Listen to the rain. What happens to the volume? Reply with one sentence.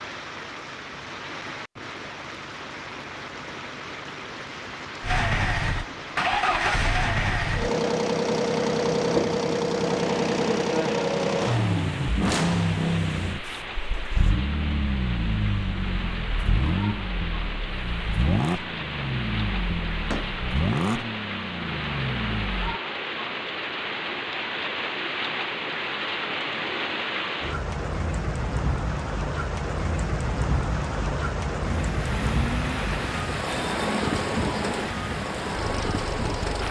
The loudness of the rain goes up.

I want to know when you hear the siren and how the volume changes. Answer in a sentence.
You can't hear the siren here.